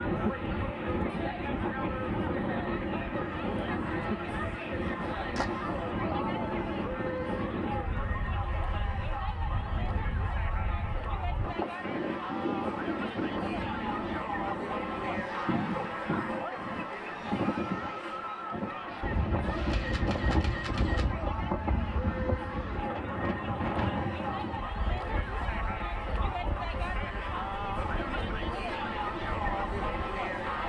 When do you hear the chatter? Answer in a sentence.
The chatter can be heard from 0.0 to 30.6 s.